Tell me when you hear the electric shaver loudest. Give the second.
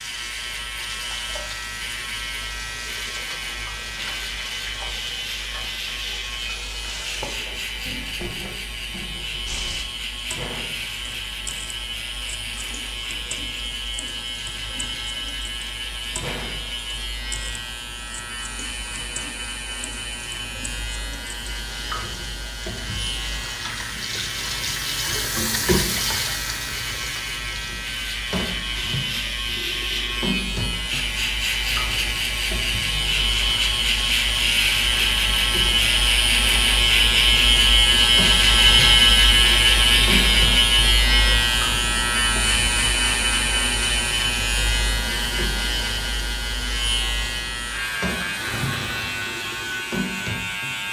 39 s.